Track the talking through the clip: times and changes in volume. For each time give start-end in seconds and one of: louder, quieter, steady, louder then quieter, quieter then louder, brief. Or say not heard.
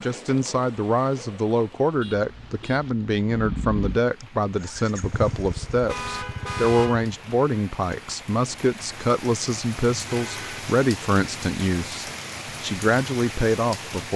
0.0-14.1 steady.